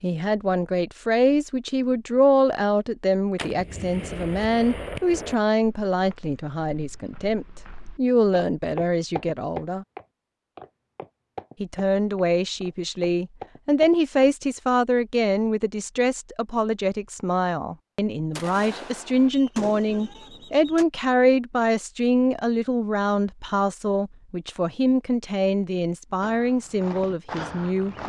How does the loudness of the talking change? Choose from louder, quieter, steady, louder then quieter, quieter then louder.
steady.